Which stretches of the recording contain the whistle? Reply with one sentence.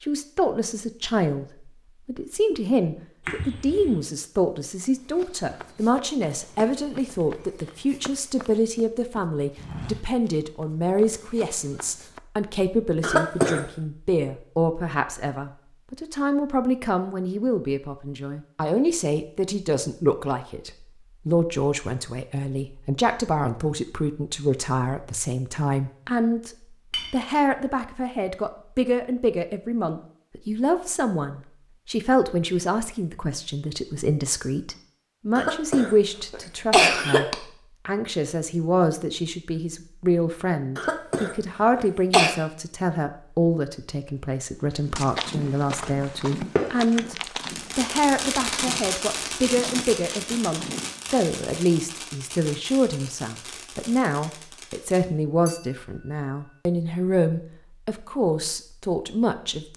You can't hear the whistle here.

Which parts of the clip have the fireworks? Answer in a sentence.
The fireworks can be heard from 45.8 to 55.0 s.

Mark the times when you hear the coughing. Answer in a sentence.
You can hear the coughing from 13.0 to 13.7 s, from 35.4 to 37.4 s and from 40.8 to 42.4 s.